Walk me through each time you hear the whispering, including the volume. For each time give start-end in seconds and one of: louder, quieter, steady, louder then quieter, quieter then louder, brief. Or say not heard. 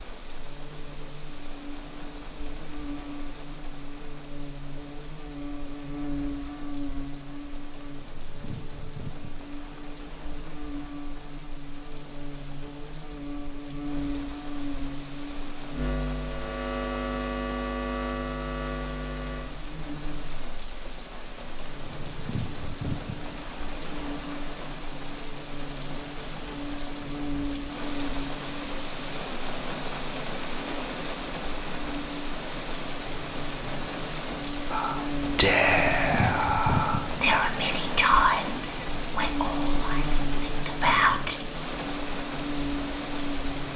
34.7-41.4 quieter.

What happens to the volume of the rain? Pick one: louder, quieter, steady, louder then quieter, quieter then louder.
louder.